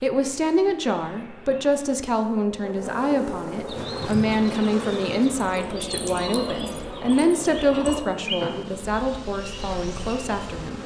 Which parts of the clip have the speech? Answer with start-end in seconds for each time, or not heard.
0.0-10.8.